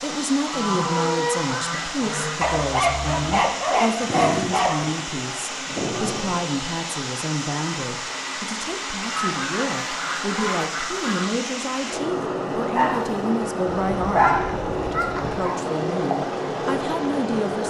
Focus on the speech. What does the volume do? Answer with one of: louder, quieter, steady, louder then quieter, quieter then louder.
steady.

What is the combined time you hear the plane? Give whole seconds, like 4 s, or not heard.
not heard.